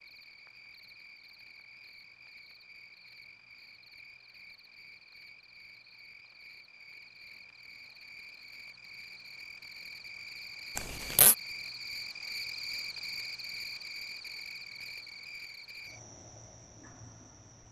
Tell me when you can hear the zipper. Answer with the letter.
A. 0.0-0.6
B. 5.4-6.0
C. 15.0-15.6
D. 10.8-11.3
D.